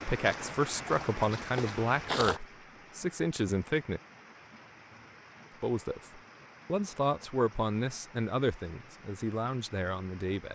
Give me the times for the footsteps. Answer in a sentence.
You can hear the footsteps from 0.0 to 2.4 s.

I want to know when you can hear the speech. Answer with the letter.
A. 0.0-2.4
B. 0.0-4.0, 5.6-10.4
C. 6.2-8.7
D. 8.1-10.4
B.